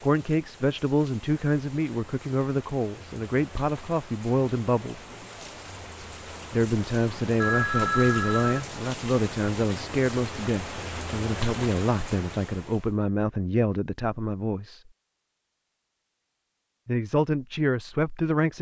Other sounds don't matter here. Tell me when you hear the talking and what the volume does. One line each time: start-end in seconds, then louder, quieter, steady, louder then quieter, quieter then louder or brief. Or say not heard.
0.0-5.0 steady
6.5-14.8 steady
16.9-18.5 brief.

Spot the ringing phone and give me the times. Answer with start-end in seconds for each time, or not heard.
7.4-8.7.